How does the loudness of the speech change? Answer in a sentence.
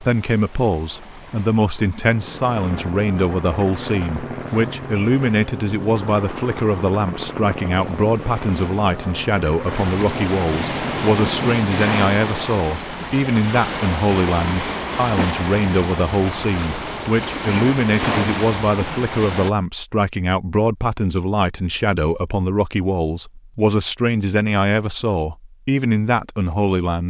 The volume of the speech stays about the same.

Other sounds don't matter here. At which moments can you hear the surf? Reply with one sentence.
You can hear the surf from 0.0 to 19.5 s.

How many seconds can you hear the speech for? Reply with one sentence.
The speech can be heard for 27 seconds in total.